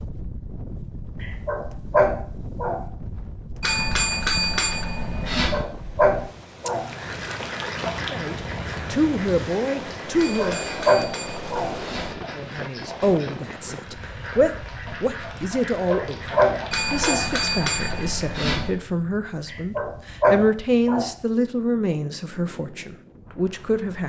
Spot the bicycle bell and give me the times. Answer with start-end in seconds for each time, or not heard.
3.6-5.7, 10.2-12.2, 16.7-18.7.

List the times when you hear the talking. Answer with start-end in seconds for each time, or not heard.
8.0-10.7, 12.3-24.0.